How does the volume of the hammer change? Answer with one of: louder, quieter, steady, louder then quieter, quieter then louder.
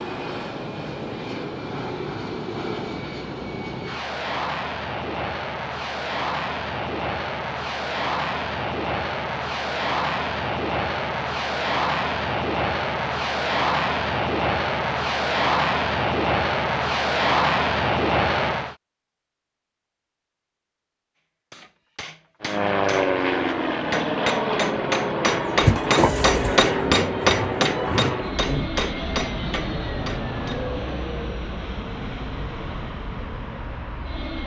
louder then quieter.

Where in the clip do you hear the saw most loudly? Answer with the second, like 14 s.
26 s.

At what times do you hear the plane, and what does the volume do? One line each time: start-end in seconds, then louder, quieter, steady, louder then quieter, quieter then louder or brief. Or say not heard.
0.0-18.8 louder
22.4-34.4 quieter.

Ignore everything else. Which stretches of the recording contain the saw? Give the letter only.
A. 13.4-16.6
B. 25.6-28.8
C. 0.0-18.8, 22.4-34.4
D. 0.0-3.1
B.